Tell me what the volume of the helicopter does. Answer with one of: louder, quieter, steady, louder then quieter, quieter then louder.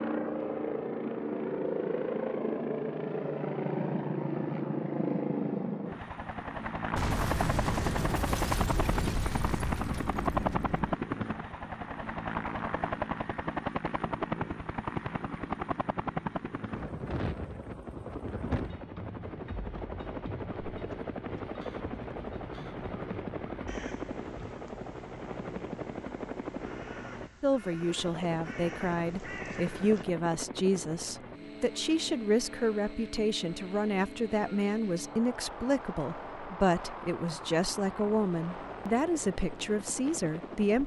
quieter.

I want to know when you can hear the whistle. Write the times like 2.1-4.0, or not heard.
not heard.